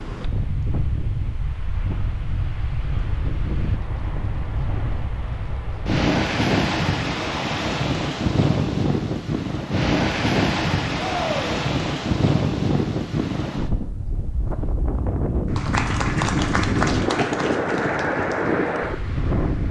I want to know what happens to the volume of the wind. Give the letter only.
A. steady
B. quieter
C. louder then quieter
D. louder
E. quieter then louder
D.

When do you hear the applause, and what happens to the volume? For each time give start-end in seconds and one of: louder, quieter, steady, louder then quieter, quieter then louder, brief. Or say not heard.
15.5-19.6 quieter.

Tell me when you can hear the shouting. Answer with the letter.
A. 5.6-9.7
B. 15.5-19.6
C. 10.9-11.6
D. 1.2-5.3
C.